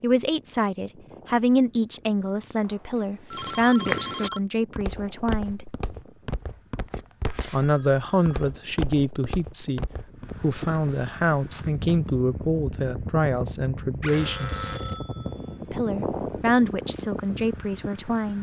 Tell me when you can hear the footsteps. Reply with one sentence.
You can hear the footsteps from 3.3 to 12.2 s.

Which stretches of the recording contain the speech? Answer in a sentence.
You can hear the speech from 0.0 to 5.7 s, from 7.5 to 14.7 s and from 15.7 to 18.3 s.